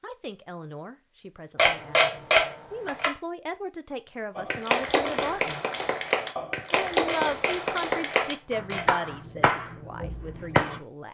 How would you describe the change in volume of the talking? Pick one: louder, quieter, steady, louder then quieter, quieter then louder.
louder then quieter.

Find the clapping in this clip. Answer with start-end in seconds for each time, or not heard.
4.3-10.8.